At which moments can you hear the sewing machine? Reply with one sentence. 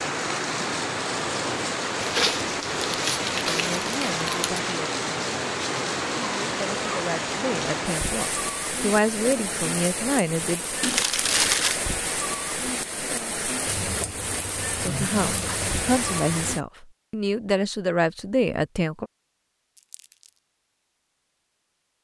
You can hear the sewing machine from 13.7 to 16.6 s.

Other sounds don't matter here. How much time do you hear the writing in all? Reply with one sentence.
The writing can't be heard in this clip.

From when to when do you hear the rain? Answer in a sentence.
The rain can be heard from 0.0 to 16.6 s.